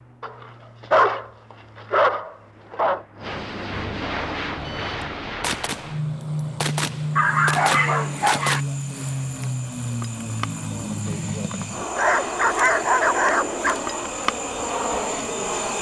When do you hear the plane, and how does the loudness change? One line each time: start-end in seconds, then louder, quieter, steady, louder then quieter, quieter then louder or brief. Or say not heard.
0.0-15.7 louder.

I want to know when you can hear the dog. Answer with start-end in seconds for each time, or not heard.
0.2-3.0, 7.2-8.6, 11.9-13.8.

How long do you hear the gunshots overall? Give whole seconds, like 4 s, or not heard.
4 s.